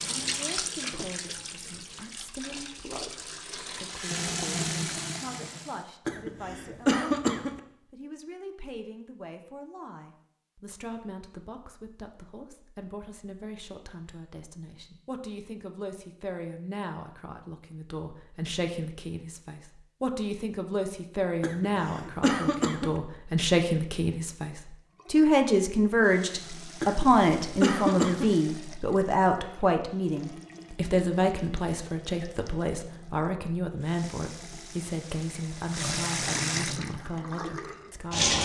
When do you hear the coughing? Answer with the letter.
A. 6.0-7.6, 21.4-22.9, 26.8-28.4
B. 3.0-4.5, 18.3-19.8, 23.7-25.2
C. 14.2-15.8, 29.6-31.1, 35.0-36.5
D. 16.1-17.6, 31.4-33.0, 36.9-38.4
A.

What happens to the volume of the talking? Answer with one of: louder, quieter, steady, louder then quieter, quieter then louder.
louder then quieter.